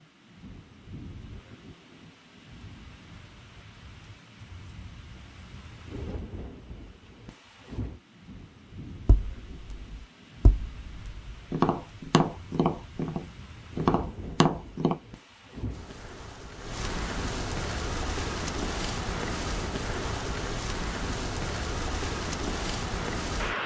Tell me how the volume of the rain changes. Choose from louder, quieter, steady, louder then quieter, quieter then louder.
louder.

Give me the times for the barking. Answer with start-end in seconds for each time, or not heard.
not heard.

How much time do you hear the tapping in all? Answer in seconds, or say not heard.
6 s.